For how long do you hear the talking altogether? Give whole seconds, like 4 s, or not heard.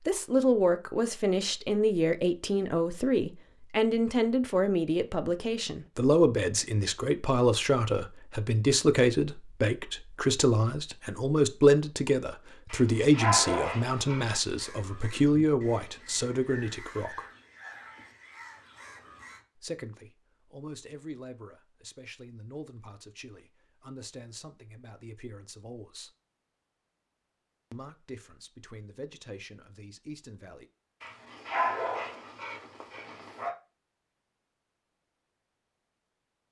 27 s.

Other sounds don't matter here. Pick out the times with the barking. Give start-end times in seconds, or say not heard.
12.7-14.2, 31.0-33.5.